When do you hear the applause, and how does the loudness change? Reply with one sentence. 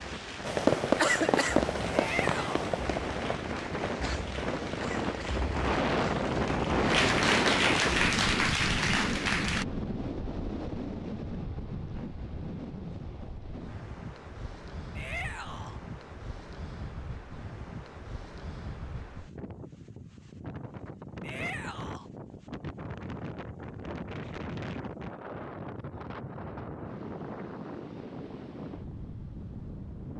You can hear the applause from 0.0 to 9.7 s, getting louder.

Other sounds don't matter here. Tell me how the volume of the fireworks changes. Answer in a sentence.
The volume of the fireworks goes down.